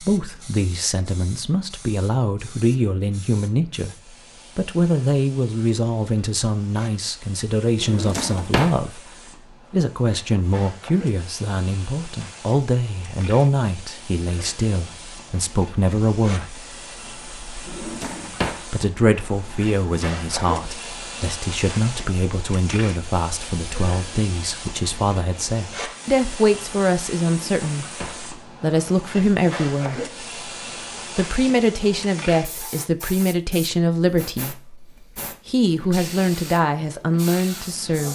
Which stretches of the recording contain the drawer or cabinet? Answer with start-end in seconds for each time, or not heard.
7.8-8.8, 17.6-18.6, 27.5-28.2.